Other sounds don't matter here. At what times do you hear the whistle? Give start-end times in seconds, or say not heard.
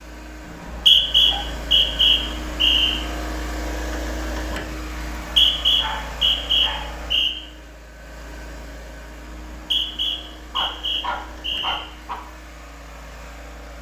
0.5-3.0, 5.0-7.3, 9.3-11.8.